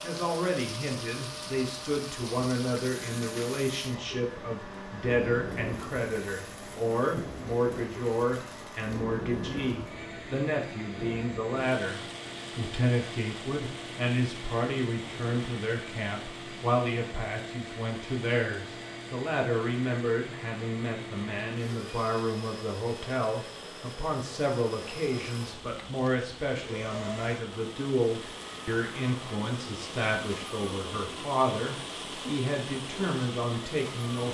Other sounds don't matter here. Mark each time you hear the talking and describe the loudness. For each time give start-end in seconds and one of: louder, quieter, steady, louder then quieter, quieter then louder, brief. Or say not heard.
0.0-34.2 steady.